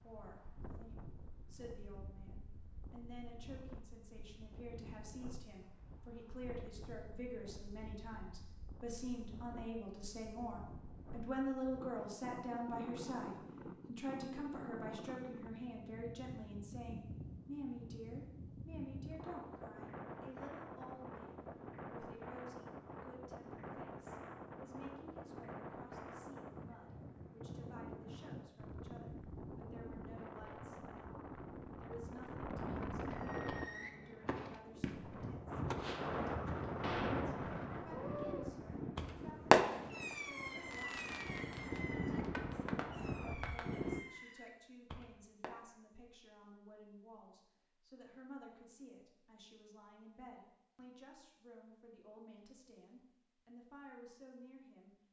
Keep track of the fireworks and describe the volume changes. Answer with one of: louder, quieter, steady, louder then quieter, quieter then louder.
louder then quieter.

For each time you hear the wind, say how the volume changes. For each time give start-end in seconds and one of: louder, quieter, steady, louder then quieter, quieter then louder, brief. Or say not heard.
0.0-44.0 louder.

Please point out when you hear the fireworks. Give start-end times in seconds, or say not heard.
33.1-45.5.